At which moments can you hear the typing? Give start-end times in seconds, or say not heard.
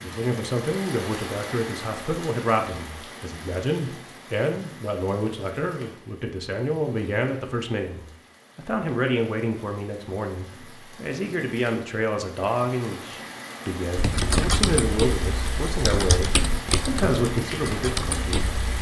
13.9-18.7.